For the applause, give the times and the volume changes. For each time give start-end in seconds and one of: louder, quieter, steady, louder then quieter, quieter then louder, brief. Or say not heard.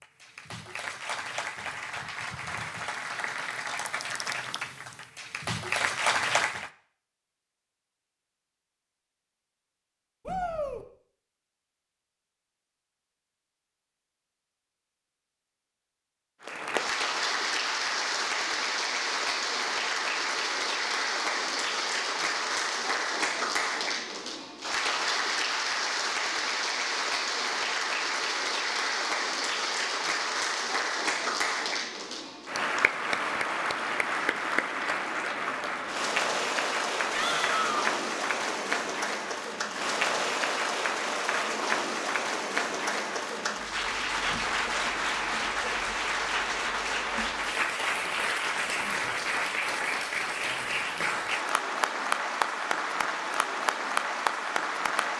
0.0-6.7 louder
16.4-55.1 steady.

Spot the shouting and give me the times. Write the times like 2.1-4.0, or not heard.
10.2-10.8, 37.1-37.9.